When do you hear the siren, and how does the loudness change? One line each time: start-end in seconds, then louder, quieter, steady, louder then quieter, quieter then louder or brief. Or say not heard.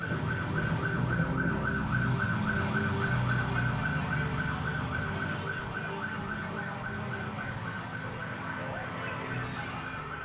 0.0-10.2 quieter.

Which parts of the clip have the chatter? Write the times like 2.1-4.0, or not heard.
3.0-10.2.